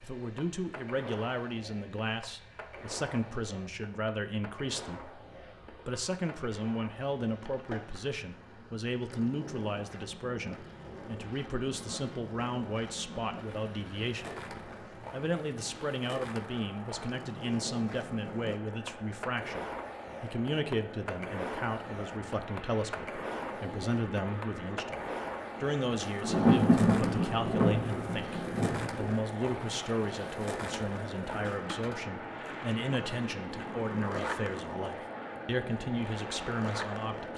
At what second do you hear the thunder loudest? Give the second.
27 s.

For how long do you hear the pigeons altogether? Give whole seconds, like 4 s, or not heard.
not heard.